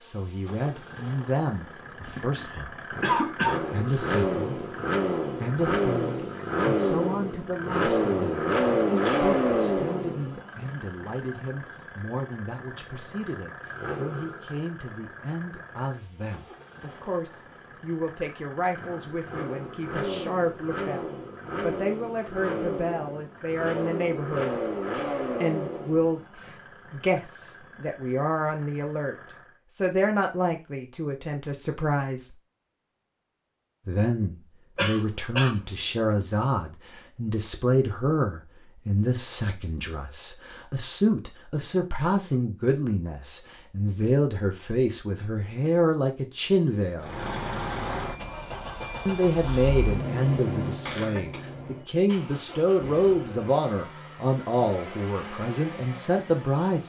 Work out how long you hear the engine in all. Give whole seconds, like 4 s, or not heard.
39 s.